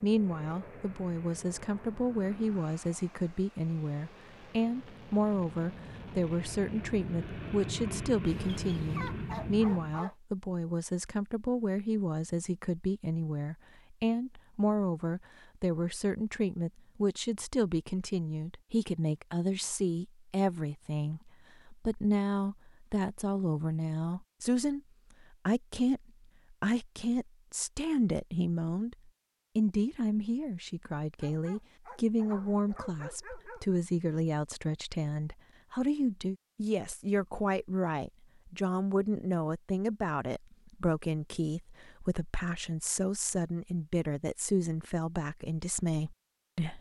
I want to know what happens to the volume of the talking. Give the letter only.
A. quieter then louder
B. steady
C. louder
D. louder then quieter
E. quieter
B.